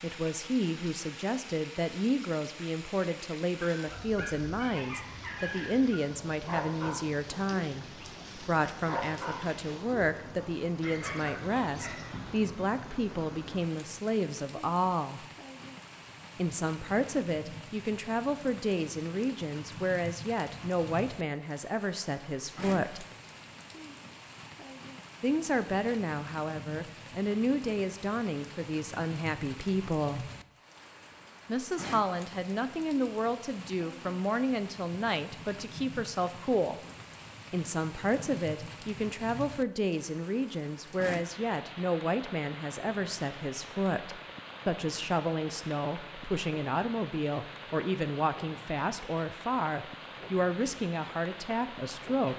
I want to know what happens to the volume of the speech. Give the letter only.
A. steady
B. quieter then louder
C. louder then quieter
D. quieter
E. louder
A.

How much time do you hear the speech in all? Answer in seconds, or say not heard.
47 s.